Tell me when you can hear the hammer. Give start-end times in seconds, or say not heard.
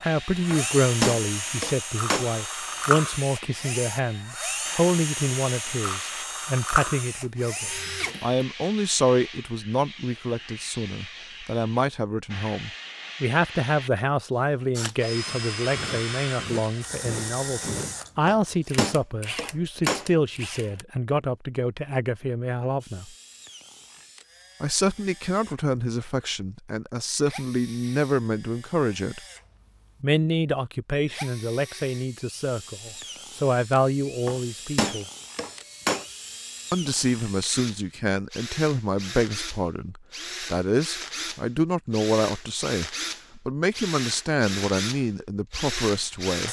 0.5-2.3, 18.2-20.1, 34.2-36.0.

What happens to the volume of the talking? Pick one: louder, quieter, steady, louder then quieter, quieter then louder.
steady.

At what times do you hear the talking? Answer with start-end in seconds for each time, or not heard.
0.0-23.1, 24.6-29.2, 30.0-35.0, 36.7-46.4.